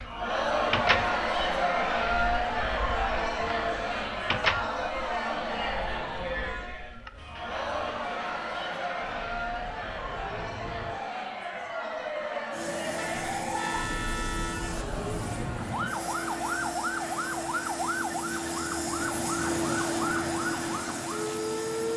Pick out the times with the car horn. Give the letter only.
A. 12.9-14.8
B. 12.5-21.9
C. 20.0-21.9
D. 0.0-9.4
A.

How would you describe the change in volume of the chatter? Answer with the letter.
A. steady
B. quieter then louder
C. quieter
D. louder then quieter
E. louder
C.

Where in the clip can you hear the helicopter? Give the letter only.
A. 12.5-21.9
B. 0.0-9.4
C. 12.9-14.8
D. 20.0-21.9
A.